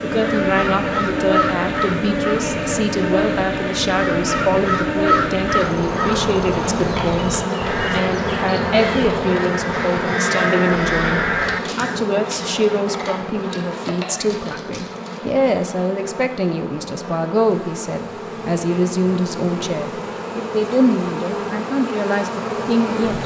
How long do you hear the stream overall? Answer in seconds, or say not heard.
not heard.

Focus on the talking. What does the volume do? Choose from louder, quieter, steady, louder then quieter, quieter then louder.
steady.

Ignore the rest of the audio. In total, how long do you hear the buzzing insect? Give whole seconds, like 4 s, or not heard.
23 s.